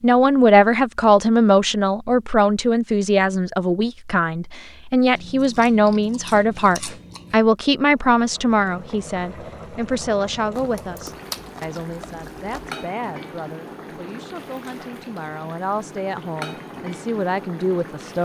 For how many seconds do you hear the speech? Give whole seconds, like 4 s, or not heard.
18 s.